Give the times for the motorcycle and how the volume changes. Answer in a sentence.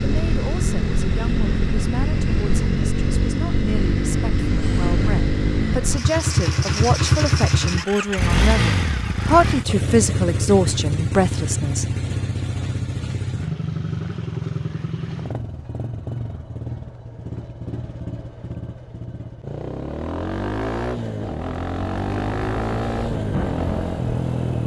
The motorcycle can be heard from 0.0 to 24.6 s, getting quieter then louder.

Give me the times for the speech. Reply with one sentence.
The speech can be heard from 0.0 to 11.8 s.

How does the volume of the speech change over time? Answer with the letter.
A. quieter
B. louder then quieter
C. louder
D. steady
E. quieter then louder
C.